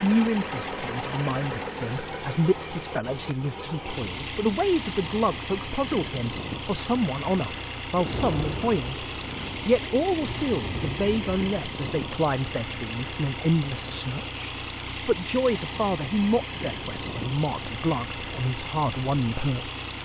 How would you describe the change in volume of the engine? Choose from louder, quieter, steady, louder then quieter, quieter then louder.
steady.